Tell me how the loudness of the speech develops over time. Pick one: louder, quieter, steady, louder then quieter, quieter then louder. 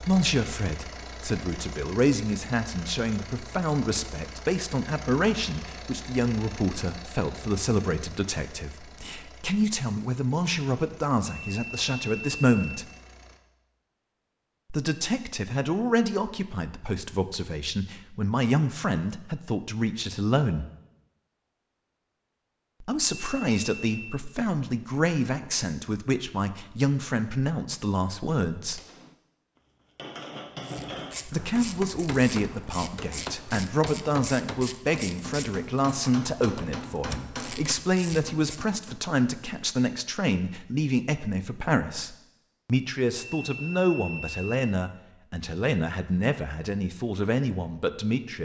steady.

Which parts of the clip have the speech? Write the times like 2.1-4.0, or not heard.
0.0-12.8, 14.7-20.6, 22.8-28.8, 31.2-48.4.